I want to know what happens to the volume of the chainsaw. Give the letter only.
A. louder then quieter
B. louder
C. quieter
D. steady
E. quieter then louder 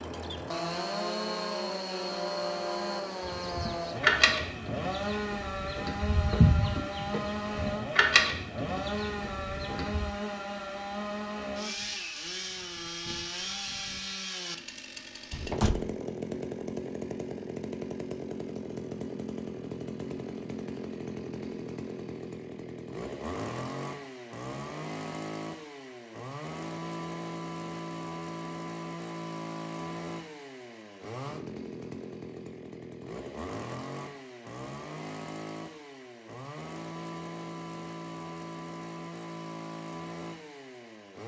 C.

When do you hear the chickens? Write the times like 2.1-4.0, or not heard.
3.2-10.1.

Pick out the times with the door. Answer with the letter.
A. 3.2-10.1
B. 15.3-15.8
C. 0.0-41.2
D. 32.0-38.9
B.